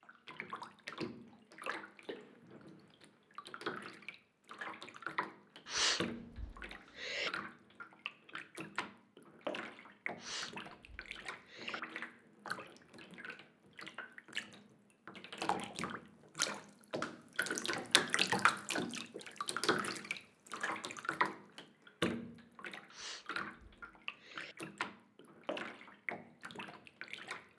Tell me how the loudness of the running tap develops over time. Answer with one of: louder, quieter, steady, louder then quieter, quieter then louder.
louder then quieter.